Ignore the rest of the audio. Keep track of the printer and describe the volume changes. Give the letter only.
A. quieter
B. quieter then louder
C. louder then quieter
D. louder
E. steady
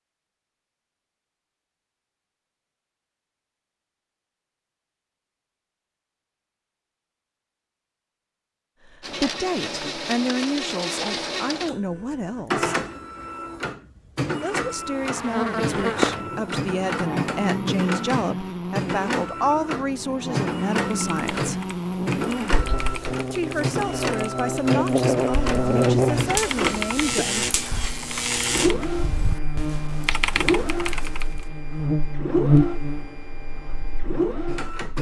E.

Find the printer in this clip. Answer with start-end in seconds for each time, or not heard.
9.0-34.9.